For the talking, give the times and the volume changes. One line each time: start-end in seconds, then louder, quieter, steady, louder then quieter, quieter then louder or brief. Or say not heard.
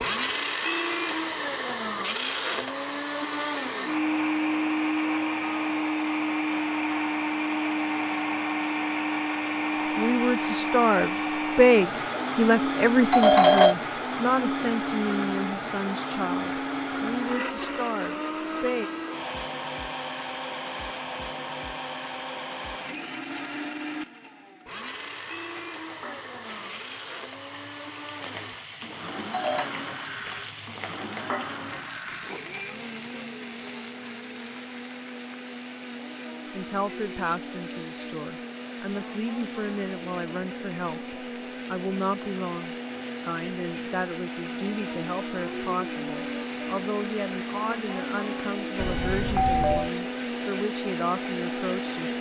9.9-18.9 quieter
36.5-52.1 steady.